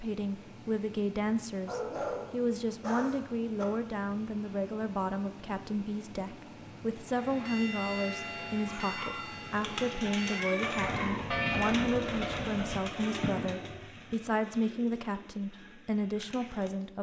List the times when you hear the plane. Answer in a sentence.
You can't hear the plane here.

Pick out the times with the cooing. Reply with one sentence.
The cooing can be heard from 9.4 to 16.9 s.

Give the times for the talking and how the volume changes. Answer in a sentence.
You can hear the talking from 0.0 to 16.9 s, at a steady volume.